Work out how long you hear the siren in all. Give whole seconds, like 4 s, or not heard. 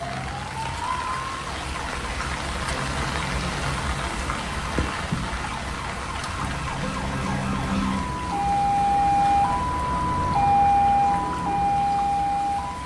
13 s.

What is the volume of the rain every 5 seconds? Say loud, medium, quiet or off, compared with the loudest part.
loud, loud, medium.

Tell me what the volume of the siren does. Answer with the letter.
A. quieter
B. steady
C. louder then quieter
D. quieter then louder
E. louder
E.